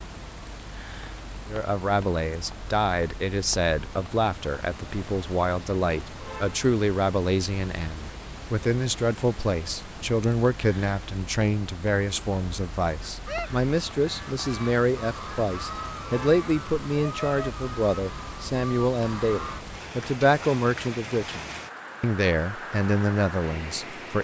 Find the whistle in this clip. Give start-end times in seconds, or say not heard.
not heard.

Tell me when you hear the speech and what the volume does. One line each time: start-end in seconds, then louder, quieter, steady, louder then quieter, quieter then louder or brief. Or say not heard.
1.4-24.2 steady.